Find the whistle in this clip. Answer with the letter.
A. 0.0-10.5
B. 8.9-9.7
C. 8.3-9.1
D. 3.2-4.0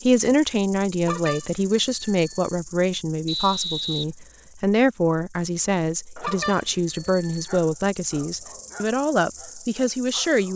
D.